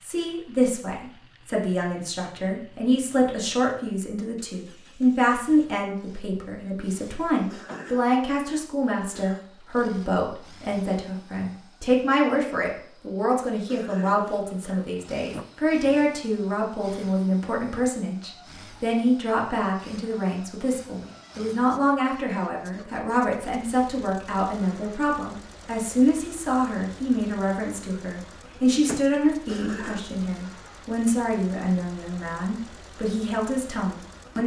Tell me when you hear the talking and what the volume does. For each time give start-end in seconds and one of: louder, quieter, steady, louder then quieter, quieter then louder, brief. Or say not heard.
0.0-34.4 steady.